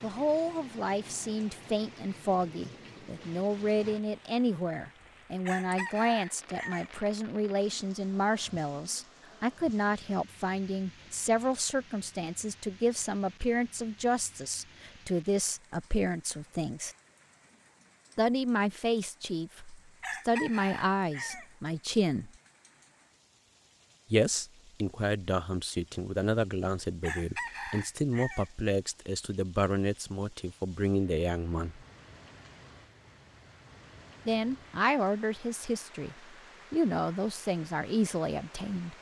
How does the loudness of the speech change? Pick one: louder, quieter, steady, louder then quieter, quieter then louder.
steady.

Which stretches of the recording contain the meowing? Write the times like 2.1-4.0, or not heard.
not heard.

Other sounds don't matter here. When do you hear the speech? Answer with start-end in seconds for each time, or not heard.
0.0-16.9, 18.1-22.3, 24.1-31.8, 34.2-38.9.